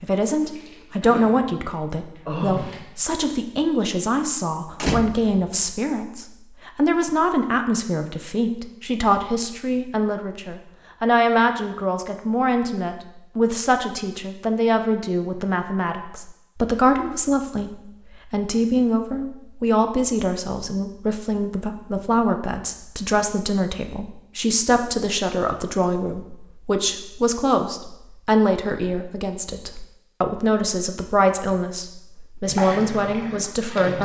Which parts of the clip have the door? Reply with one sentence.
The door can be heard from 4.7 to 5.5 s.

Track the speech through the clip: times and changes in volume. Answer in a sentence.
The speech can be heard from 0.0 to 34.0 s, at a steady volume.